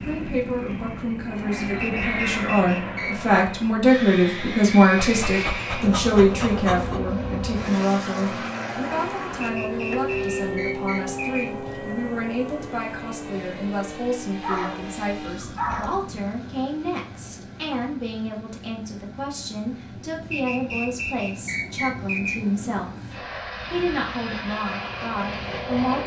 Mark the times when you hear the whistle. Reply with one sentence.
The whistle can be heard from 1.8 to 3.3 s, from 9.4 to 11.4 s and from 20.3 to 22.4 s.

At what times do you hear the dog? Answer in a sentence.
The dog can be heard from 5.0 to 7.0 s and from 14.4 to 16.0 s.